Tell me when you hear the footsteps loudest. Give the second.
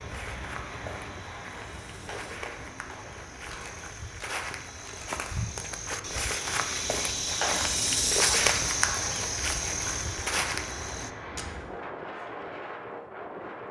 8 s.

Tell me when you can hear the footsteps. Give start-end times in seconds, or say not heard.
0.0-11.1.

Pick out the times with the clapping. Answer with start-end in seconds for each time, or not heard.
2.0-3.8, 7.4-9.1.